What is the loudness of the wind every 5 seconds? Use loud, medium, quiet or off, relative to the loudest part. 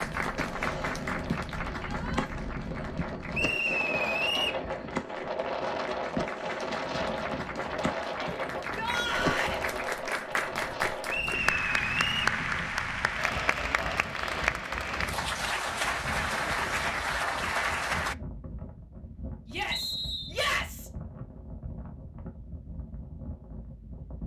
loud, loud, medium, medium, medium.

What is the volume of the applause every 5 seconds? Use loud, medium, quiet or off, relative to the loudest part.
medium, medium, loud, loud, off.